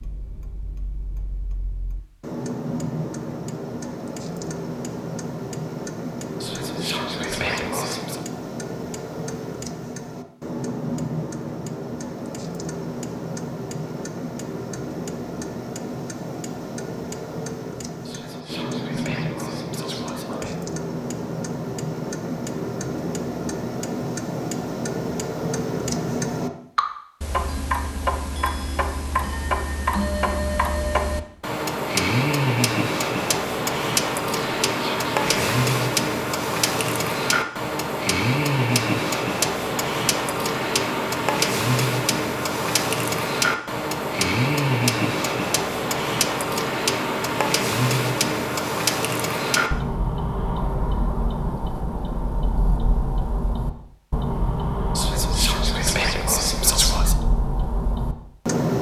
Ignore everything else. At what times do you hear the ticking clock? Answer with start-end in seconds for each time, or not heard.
0.0-58.7.